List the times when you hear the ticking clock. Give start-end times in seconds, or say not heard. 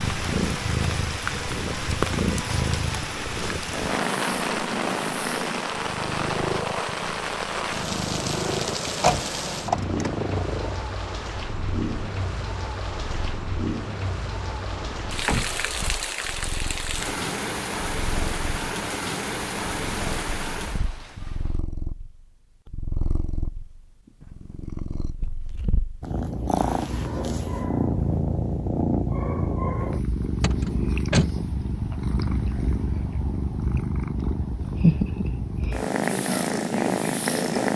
not heard.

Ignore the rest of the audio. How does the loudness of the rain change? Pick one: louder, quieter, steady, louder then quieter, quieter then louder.
steady.